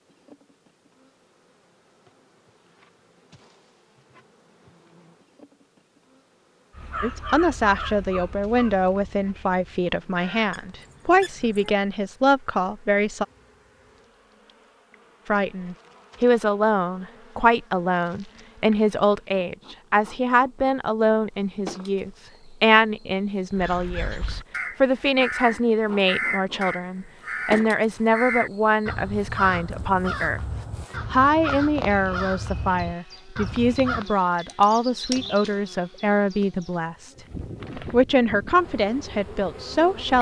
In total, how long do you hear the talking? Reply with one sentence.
The talking can be heard for 30 seconds in total.